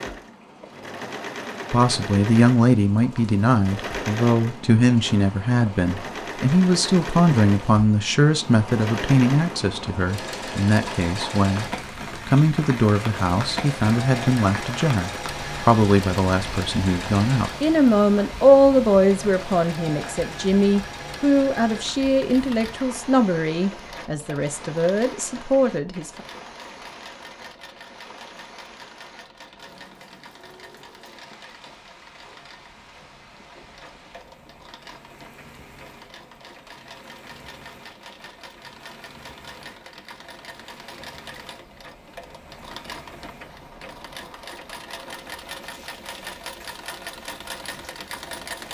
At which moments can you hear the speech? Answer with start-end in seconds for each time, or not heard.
1.7-26.2.